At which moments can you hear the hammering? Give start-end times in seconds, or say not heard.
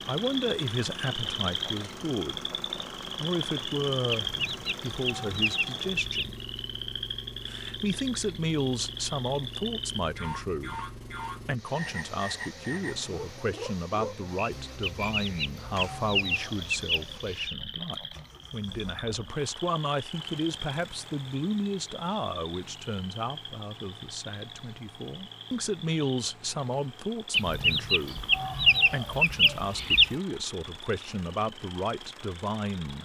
not heard.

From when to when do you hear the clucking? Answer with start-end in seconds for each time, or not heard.
4.1-6.2, 14.8-17.6, 27.3-30.1.